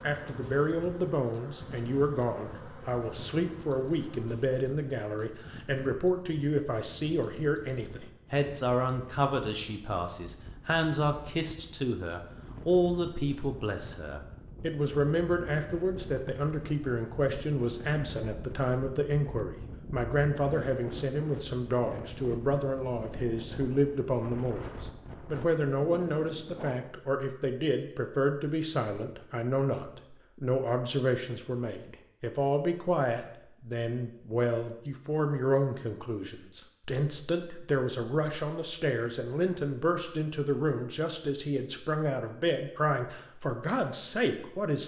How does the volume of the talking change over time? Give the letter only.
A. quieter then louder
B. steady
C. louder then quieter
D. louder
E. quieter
B.